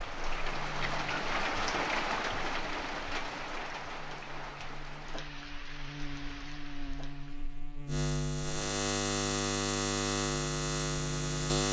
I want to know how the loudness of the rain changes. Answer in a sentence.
The volume of the rain goes down.